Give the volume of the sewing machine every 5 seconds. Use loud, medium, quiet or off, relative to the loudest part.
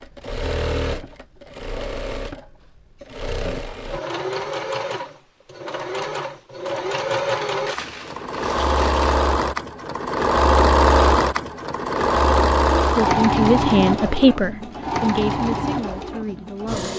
medium, medium, loud, medium.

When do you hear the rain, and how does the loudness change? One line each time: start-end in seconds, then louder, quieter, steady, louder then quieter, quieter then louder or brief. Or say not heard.
not heard.